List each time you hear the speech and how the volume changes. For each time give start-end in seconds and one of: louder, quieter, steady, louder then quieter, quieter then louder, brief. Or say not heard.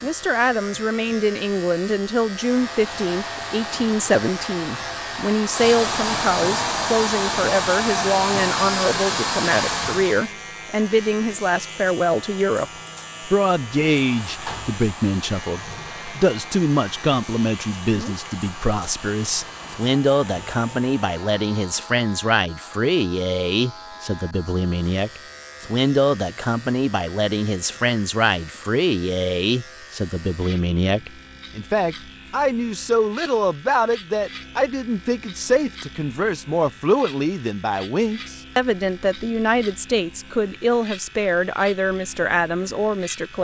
0.0-43.3 steady.